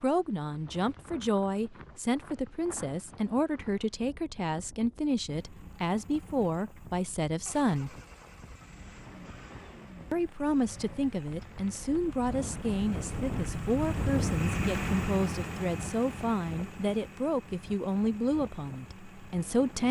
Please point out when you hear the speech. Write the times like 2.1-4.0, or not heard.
0.0-8.0, 10.1-19.8.